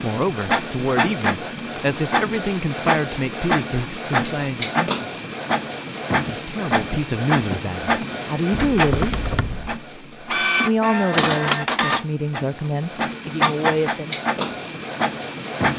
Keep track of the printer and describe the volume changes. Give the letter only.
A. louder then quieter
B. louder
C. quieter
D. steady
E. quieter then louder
D.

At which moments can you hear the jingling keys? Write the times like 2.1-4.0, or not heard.
8.5-9.8.